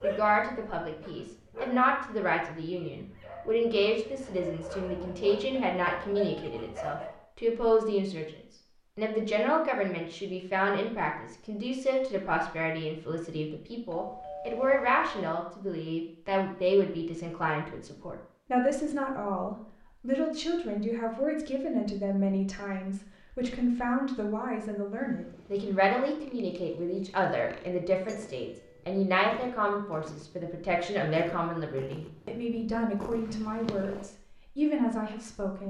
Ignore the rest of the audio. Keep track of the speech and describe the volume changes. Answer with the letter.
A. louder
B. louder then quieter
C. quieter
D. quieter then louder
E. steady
E.